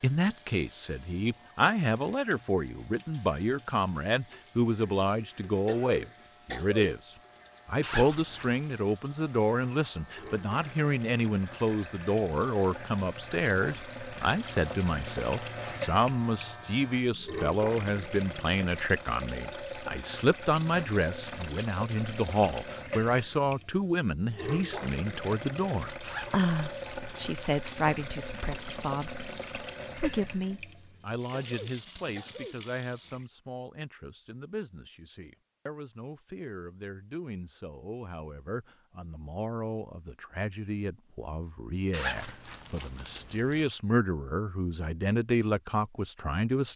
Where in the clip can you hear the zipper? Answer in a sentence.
You can hear the zipper from 7.8 to 8.7 s, from 26.0 to 27.3 s and from 41.9 to 43.7 s.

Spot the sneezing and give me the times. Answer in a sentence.
You can hear the sneezing from 5.7 to 6.8 s and from 31.3 to 32.6 s.